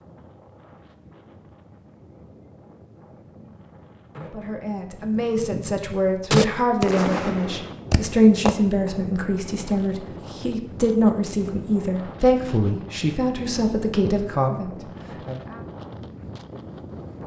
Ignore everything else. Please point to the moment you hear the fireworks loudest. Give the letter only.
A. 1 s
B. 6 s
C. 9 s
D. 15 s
B.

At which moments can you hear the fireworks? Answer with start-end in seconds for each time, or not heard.
3.1-8.6.